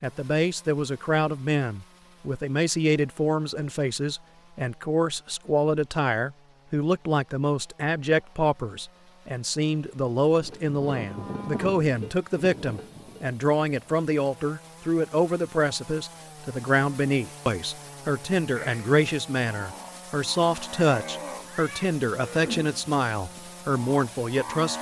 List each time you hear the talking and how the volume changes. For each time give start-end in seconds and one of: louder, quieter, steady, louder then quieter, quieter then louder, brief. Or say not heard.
0.0-24.7 steady.